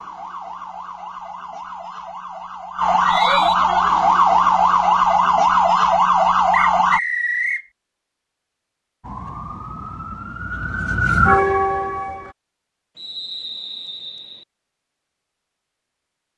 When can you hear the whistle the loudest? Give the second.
7 s.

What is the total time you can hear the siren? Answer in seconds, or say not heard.
10 s.